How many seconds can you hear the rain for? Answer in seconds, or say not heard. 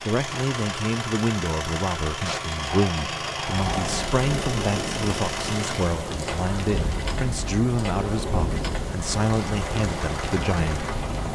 8 s.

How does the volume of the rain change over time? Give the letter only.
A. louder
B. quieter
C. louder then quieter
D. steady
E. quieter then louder
D.